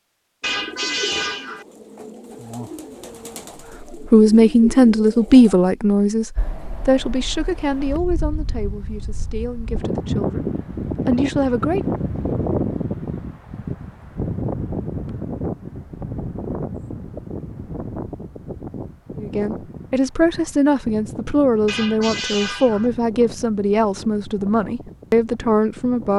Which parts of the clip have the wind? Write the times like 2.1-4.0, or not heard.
6.3-26.1.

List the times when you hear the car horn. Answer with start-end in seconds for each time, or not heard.
0.4-1.6, 21.6-22.9.